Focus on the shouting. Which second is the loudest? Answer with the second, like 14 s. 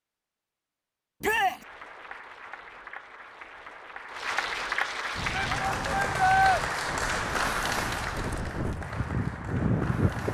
6 s.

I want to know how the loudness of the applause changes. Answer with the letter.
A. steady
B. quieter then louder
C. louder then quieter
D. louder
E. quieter
C.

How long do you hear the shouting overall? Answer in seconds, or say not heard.
2 s.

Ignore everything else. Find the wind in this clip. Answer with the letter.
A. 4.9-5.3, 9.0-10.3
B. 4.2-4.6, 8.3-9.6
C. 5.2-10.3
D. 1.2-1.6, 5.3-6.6
C.